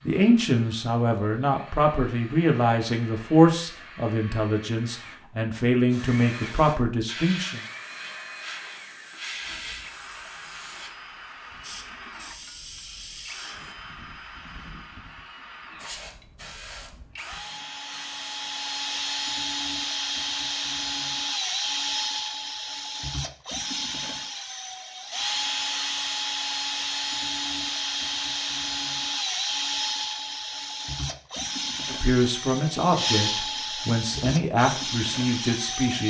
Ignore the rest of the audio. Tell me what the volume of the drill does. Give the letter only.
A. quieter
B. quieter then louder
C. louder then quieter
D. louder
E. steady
D.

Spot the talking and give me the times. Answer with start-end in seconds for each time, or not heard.
0.0-7.6, 31.9-36.0.